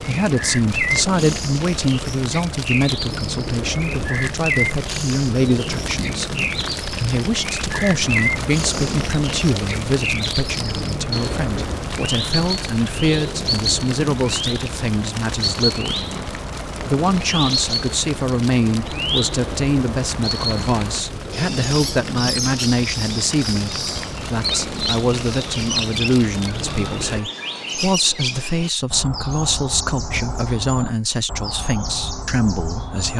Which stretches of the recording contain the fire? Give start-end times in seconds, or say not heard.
0.0-27.2.